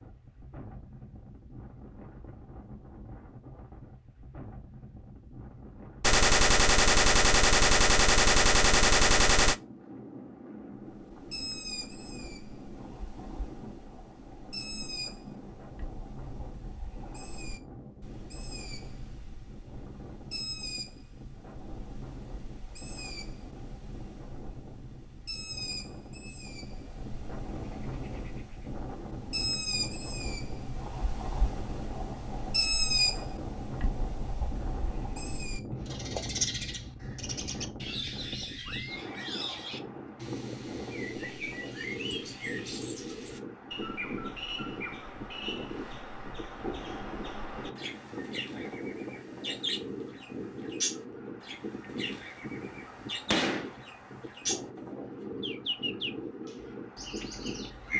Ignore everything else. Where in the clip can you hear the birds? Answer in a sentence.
You can hear the birds from 10.8 to 57.9 s.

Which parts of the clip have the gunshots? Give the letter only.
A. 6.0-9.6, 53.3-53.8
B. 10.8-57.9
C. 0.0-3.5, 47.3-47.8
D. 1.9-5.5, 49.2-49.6
A.